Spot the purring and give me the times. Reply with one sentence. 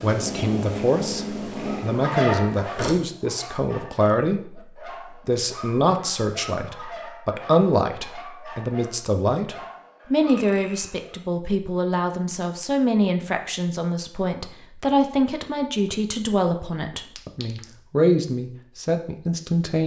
You can hear the purring from 0.0 to 3.0 s.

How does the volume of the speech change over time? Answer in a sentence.
The loudness of the speech stays about the same.